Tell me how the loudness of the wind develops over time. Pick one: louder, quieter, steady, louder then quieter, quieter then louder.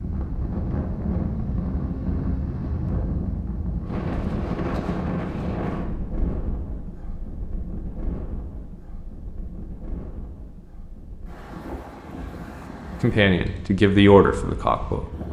quieter.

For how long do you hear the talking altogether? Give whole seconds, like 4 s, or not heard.
2 s.